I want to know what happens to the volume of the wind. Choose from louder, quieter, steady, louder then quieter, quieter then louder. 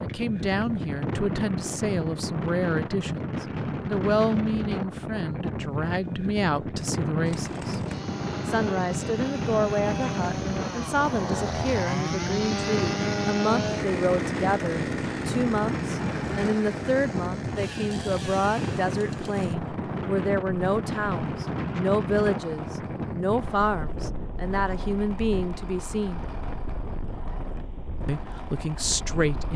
quieter.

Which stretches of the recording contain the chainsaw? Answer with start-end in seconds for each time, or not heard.
7.2-29.5.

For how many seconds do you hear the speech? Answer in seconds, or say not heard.
27 s.